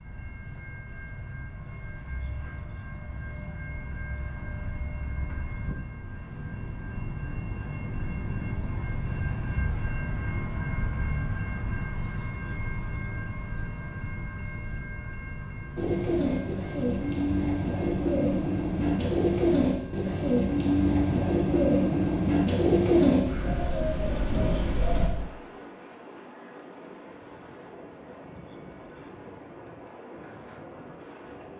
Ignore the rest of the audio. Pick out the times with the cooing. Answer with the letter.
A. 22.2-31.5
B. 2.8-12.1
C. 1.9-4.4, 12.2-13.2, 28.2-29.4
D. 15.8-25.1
D.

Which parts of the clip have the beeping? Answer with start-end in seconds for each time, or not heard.
1.9-4.4, 12.2-13.2, 28.2-29.4.